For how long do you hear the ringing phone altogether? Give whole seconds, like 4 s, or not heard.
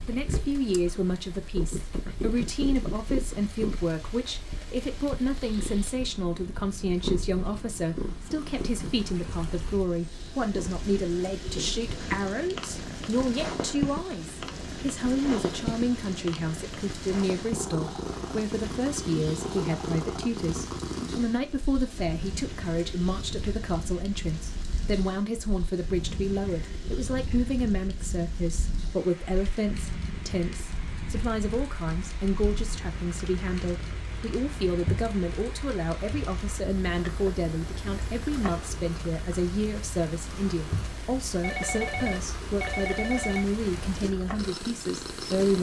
2 s.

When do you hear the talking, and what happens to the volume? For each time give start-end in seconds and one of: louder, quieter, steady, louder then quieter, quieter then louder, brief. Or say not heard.
0.1-45.5 steady.